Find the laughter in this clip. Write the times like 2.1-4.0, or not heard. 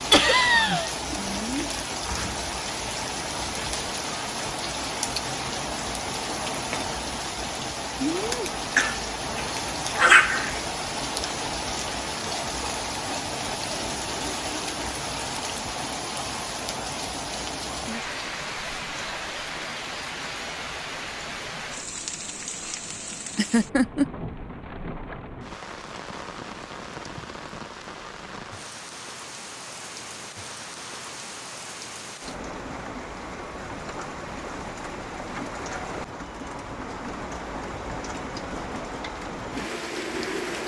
0.1-0.9, 23.4-24.1.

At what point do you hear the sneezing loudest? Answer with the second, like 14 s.
10 s.